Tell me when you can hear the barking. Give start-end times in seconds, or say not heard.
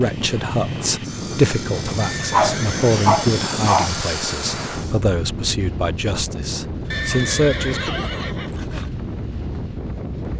2.3-3.9.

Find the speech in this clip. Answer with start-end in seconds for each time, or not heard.
0.0-8.1.